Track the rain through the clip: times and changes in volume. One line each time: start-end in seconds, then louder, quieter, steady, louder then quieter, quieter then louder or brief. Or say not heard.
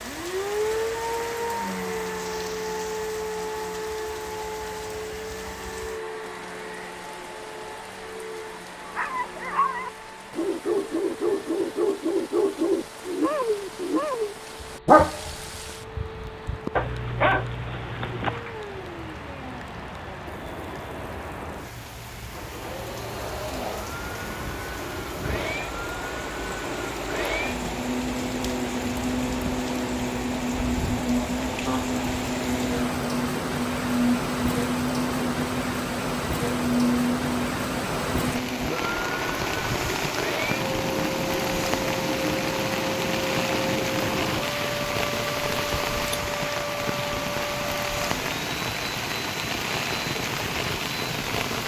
0.0-51.6 louder.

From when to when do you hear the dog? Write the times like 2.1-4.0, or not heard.
8.8-18.4.